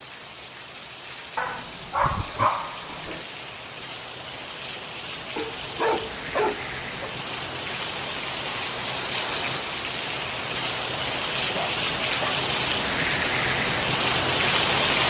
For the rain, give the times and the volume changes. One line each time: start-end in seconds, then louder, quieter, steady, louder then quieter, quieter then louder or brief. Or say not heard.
0.0-15.0 louder.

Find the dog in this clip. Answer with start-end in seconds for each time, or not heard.
1.4-3.2, 5.3-7.1, 11.6-12.4.